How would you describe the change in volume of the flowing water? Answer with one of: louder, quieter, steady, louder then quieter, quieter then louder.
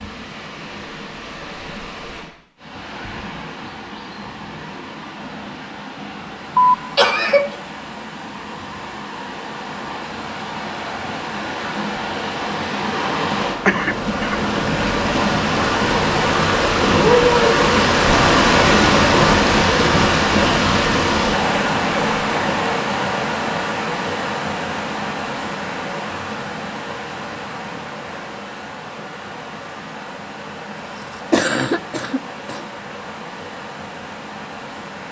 louder then quieter.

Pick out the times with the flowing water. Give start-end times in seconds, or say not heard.
0.0-35.0.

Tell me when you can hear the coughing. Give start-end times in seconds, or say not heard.
6.5-7.5, 13.7-14.4, 30.9-32.6.